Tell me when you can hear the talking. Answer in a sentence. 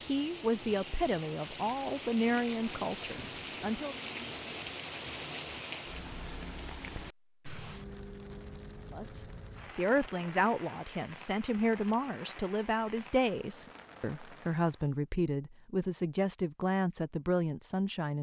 The talking can be heard from 0.0 to 4.0 s and from 8.9 to 18.1 s.